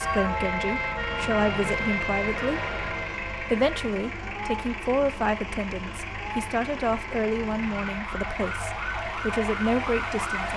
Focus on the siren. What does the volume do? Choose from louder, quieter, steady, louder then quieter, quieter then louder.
quieter then louder.